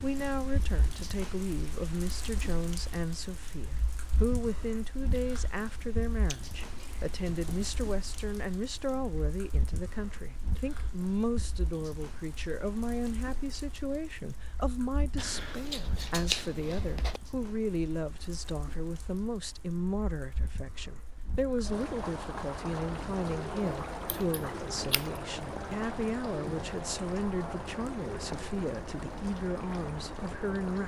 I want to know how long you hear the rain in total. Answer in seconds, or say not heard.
31 s.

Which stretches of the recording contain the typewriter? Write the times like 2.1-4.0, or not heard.
not heard.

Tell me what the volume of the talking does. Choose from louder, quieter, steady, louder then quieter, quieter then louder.
steady.